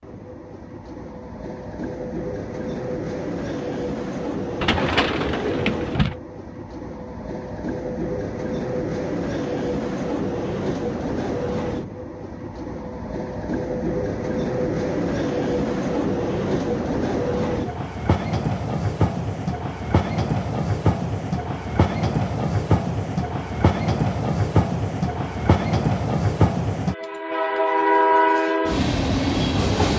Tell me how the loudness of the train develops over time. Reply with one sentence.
The loudness of the train goes up.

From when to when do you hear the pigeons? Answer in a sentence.
You can hear the pigeons from 4.6 to 6.2 s.